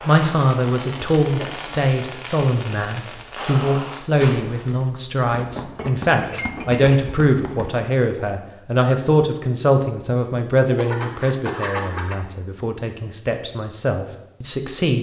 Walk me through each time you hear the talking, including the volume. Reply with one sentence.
You can hear the talking from 0.0 to 14.9 s, getting quieter.